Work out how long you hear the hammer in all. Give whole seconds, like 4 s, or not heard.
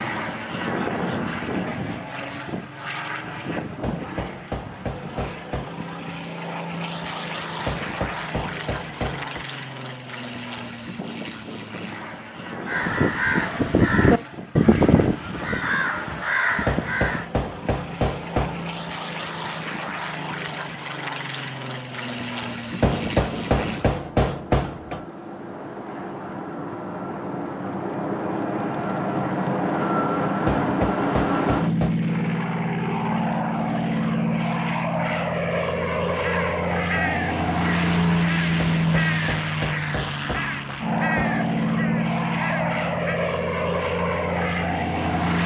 12 s.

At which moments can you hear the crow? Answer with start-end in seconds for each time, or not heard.
12.7-17.2, 35.8-43.2.